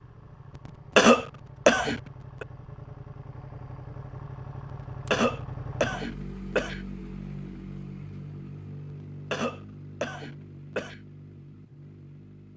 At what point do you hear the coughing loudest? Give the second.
1 s.